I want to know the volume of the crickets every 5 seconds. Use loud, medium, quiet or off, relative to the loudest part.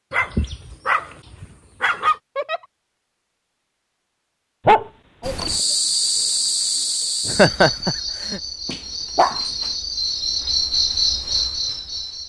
off, loud, loud.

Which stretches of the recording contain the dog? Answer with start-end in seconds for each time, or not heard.
0.1-2.1, 4.7-5.3, 8.7-9.4.